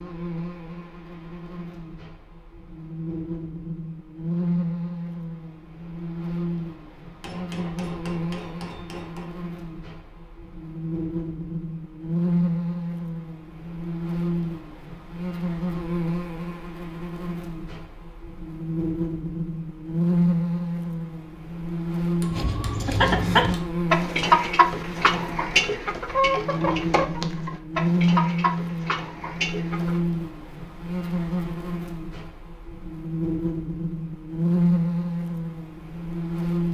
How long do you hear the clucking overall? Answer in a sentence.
You can hear the clucking for 8 seconds altogether.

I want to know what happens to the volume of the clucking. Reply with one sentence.
The volume of the clucking goes down.